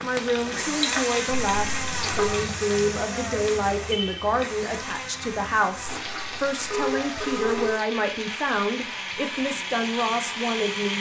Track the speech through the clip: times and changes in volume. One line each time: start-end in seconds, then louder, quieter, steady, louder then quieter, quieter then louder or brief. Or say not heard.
0.0-10.9 steady.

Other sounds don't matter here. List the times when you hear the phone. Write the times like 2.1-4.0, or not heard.
1.2-2.3, 6.0-7.8.